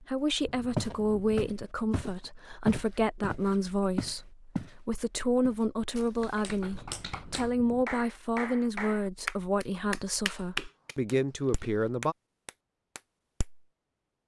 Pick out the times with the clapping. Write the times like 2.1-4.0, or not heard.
6.2-13.7.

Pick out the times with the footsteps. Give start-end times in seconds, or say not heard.
0.8-4.8, 5.4-6.8.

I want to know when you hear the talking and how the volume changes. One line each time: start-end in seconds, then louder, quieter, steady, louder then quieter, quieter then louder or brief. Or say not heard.
0.0-12.2 steady.